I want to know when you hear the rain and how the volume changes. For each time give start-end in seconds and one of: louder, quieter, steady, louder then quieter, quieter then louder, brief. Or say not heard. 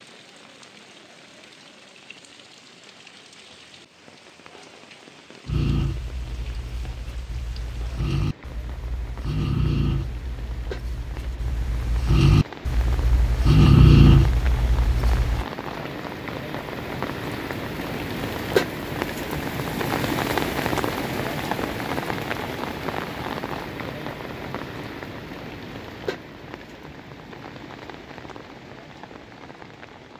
0.0-30.1 louder then quieter.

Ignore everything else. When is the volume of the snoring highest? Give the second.
14 s.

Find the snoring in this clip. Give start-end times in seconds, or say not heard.
5.5-15.4.